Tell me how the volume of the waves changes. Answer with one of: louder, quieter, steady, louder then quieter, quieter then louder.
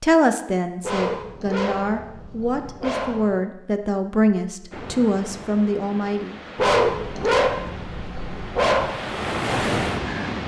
louder.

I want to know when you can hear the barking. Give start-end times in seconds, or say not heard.
0.8-3.3, 6.5-8.9.